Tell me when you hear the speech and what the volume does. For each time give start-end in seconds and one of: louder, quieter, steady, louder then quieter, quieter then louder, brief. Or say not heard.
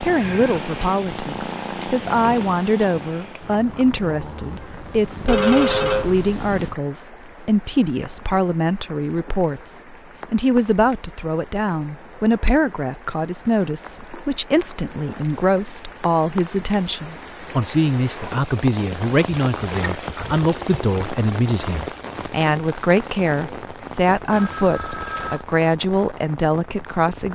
0.0-27.2 steady.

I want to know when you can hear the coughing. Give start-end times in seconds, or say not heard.
not heard.